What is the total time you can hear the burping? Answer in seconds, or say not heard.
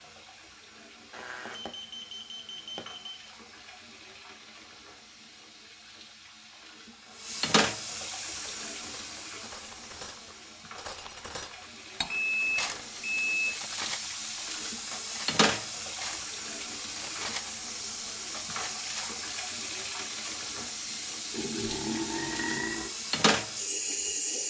2 s.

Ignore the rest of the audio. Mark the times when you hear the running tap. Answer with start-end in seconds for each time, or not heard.
0.0-24.4.